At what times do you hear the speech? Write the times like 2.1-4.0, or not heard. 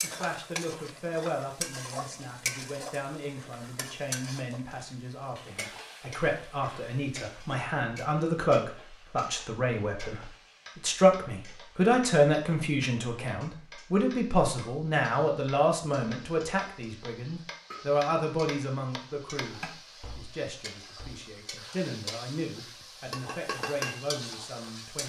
0.0-25.0.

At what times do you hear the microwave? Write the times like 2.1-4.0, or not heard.
not heard.